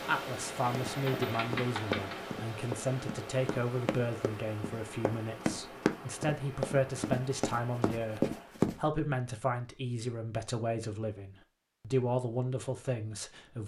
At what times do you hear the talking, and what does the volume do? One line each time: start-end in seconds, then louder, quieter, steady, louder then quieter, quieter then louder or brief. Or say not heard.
0.1-13.6 steady.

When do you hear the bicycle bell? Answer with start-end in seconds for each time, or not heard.
not heard.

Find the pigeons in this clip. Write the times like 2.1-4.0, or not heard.
0.6-2.2.